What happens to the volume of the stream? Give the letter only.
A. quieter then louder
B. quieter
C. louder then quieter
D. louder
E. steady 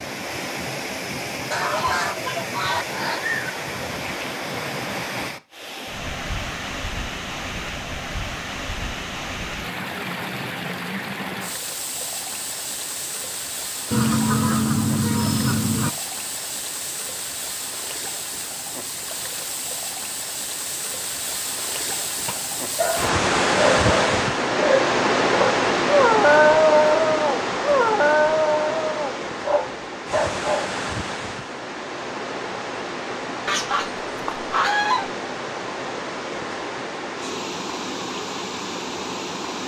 C.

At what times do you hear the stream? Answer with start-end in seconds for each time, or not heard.
0.0-39.6.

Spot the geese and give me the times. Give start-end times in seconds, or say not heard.
1.5-3.4, 13.9-15.9, 33.5-35.1.